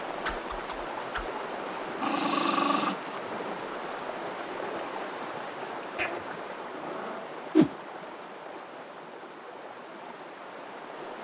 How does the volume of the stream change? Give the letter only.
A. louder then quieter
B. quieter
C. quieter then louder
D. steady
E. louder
B.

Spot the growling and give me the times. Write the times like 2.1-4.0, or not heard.
1.8-3.6, 6.0-7.3.